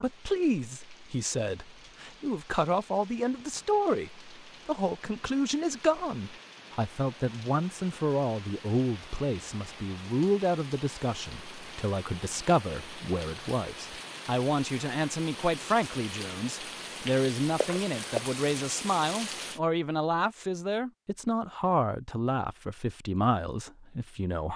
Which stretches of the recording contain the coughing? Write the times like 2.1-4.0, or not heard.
17.6-18.3.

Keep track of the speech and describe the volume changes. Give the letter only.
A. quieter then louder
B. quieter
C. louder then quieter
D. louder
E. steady
E.